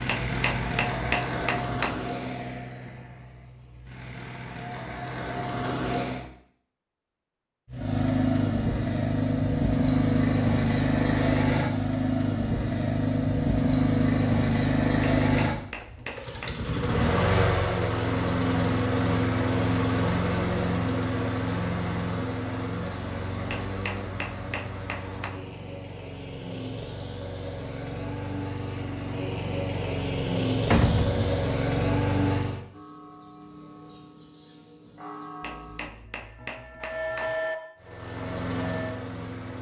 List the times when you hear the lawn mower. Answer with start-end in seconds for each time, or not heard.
0.0-6.3, 7.7-32.6, 37.8-39.5.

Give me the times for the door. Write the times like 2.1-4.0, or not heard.
30.7-31.4.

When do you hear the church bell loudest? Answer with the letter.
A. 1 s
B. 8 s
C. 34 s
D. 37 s
D.